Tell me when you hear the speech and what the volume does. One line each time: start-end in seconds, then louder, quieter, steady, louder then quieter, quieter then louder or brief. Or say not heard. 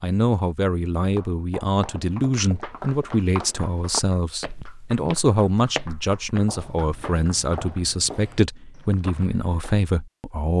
0.0-10.5 steady.